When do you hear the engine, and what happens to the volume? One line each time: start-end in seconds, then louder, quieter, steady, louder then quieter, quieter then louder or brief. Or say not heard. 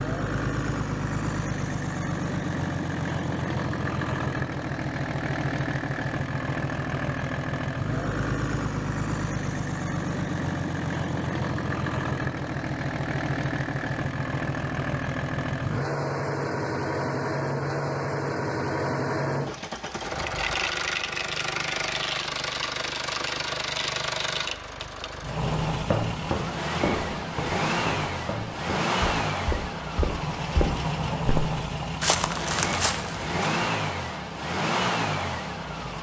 0.0-35.9 steady.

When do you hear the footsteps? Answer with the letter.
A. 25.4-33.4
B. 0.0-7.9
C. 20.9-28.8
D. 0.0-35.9
A.